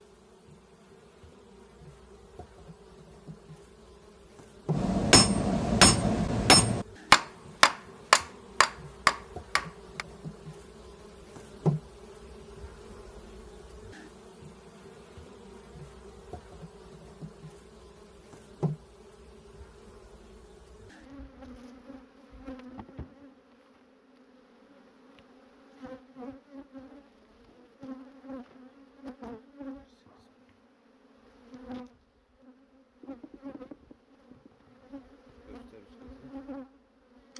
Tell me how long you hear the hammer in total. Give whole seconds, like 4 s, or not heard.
5 s.